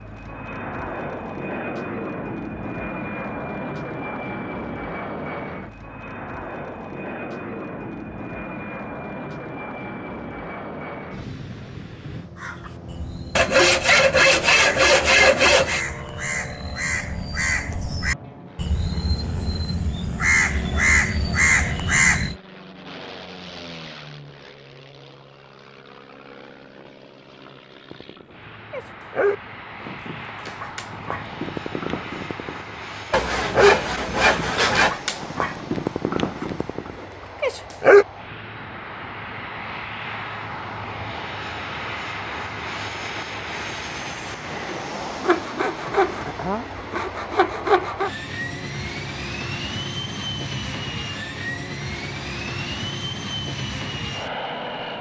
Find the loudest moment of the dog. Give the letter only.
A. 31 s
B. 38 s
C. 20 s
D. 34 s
B.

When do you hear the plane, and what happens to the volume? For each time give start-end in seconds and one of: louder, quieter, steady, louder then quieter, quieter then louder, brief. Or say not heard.
0.0-54.9 quieter then louder.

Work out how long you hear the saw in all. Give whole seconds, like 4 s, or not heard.
7 s.